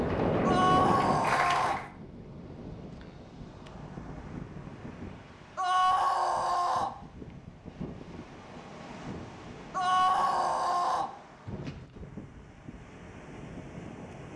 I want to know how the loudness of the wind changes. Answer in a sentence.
The loudness of the wind goes down.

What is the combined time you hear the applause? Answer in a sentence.
You can hear the applause for 2 seconds altogether.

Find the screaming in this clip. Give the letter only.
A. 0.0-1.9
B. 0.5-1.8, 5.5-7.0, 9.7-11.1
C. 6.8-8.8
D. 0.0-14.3
B.